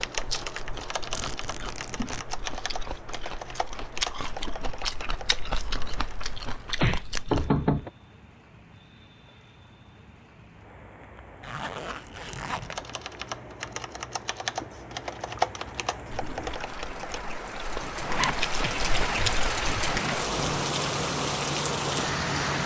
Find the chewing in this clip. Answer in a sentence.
You can hear the chewing from 0.0 to 7.5 s and from 16.1 to 22.6 s.